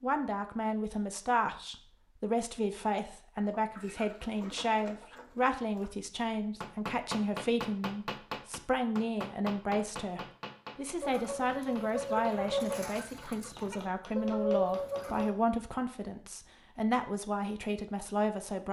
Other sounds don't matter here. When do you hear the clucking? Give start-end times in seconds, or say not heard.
3.4-5.9, 11.0-15.3.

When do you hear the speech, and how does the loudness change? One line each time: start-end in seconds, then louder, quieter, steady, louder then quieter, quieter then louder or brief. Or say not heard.
0.0-18.6 steady.